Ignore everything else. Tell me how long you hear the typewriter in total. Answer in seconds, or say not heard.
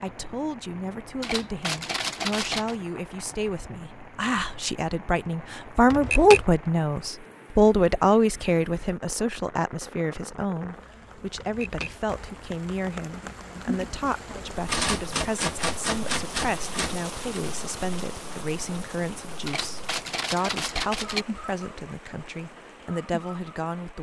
7 s.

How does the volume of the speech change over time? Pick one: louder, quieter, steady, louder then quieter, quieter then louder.
louder then quieter.